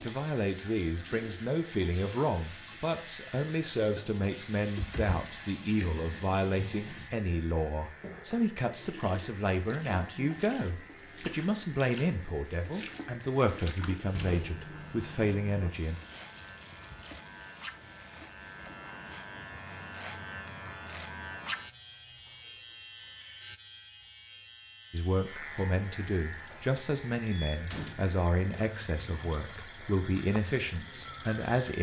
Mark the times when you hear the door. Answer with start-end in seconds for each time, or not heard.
4.6-6.0, 14.1-15.7, 27.5-28.0.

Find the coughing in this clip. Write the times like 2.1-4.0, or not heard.
not heard.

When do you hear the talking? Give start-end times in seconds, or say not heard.
0.0-15.9, 24.9-31.7.